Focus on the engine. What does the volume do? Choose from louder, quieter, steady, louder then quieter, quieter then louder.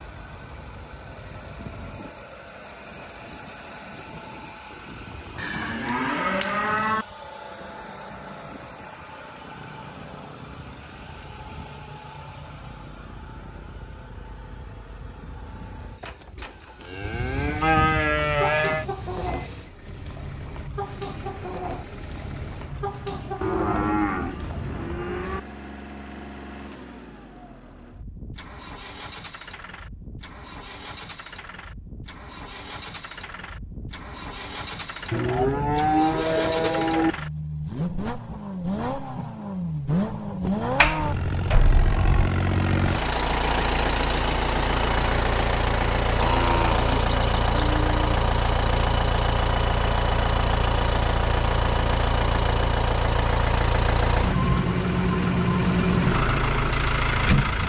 louder.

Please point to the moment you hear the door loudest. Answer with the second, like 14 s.
41 s.